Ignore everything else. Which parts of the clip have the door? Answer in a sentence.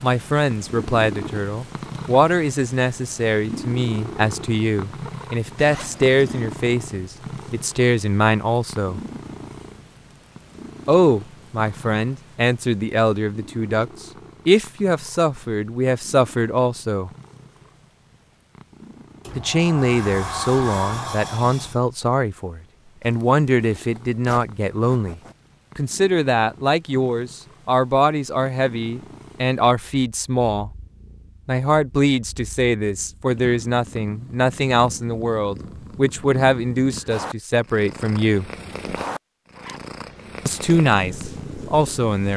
You can hear the door from 19.2 to 21.8 s.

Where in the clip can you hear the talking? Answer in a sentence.
The talking can be heard from 0.0 to 9.0 s, from 10.8 to 17.1 s, from 19.4 to 30.7 s, from 31.4 to 38.5 s and from 40.5 to 42.3 s.